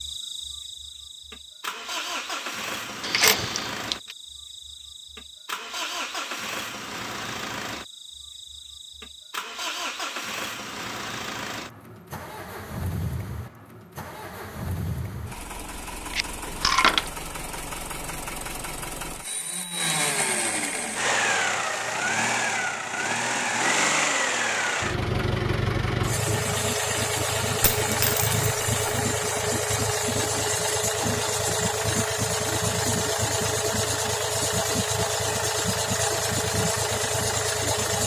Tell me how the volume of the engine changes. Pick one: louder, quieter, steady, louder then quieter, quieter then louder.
louder.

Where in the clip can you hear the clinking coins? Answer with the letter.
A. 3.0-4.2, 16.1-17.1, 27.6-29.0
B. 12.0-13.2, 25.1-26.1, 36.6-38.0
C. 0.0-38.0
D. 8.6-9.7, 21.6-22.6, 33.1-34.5
A.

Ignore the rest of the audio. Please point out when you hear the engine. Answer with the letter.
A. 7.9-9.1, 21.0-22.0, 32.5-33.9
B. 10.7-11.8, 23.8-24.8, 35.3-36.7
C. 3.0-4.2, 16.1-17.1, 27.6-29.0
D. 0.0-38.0
D.